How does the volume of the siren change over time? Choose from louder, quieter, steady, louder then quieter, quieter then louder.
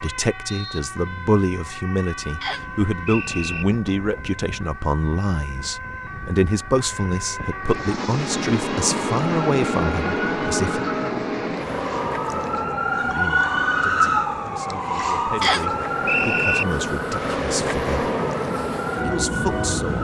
louder then quieter.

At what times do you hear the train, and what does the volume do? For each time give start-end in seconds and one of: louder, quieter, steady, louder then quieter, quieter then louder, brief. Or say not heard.
7.6-19.9 quieter then louder.